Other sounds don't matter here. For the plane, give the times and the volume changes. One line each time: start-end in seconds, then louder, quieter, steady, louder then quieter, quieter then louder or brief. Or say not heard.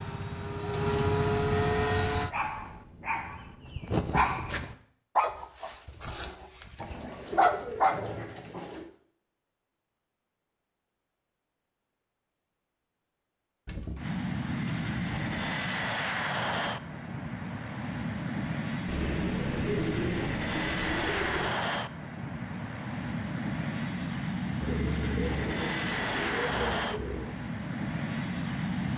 0.0-2.4 brief
13.9-28.9 steady.